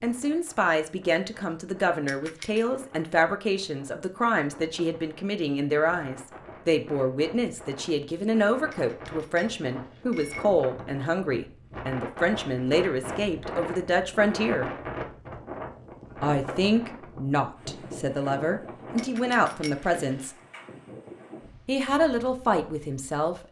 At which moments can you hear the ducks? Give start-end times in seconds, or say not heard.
not heard.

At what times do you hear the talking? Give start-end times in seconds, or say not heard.
0.0-14.7, 16.2-20.4, 21.6-23.4.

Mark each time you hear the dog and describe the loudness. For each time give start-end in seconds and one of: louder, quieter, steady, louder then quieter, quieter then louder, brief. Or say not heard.
not heard.